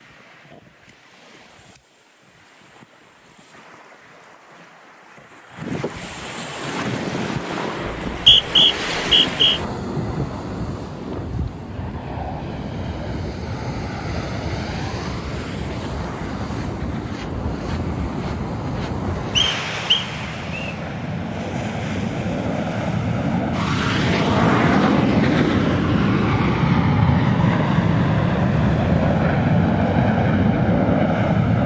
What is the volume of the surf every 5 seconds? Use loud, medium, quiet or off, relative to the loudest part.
quiet, loud, loud, loud, medium, quiet, quiet.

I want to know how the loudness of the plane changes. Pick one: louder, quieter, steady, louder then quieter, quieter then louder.
louder.